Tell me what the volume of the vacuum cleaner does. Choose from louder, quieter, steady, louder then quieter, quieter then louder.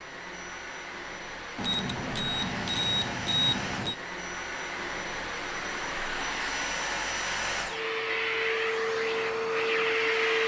louder.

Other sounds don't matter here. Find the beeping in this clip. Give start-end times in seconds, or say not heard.
1.6-4.0.